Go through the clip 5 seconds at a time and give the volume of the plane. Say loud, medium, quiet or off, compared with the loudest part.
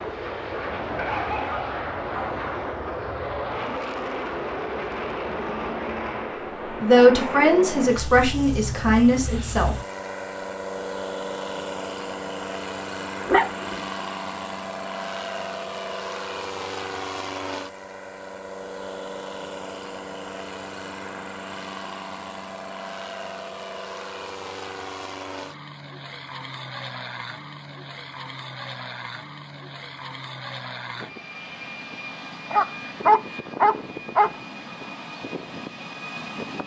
loud, loud, loud, loud, medium, medium, medium, medium.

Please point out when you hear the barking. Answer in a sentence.
You can hear the barking from 0.9 to 2.4 s, from 13.2 to 13.8 s and from 32.5 to 34.3 s.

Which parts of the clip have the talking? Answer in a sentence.
You can hear the talking from 6.8 to 9.8 s.